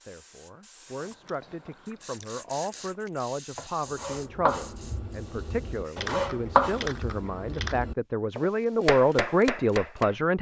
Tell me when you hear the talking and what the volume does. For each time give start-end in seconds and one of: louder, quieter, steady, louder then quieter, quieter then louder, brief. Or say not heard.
0.1-10.3 louder.